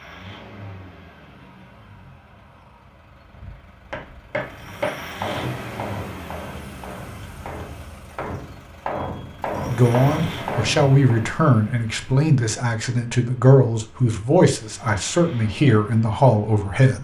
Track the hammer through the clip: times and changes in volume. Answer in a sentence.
The hammer can be heard from 3.3 to 11.3 s, getting quieter then louder.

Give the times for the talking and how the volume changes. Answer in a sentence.
You can hear the talking from 9.7 to 16.9 s, at a steady volume.